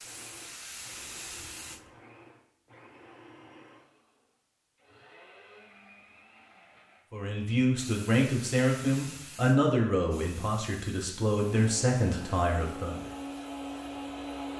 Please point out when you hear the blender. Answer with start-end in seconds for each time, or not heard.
0.0-7.1, 11.5-14.5.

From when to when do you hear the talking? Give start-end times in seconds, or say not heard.
7.1-13.1.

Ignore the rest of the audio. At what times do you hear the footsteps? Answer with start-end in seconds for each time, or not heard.
not heard.